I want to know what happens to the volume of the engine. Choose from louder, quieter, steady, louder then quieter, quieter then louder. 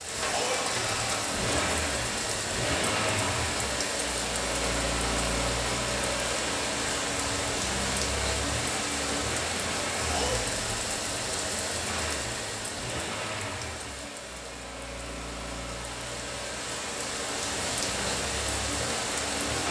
quieter.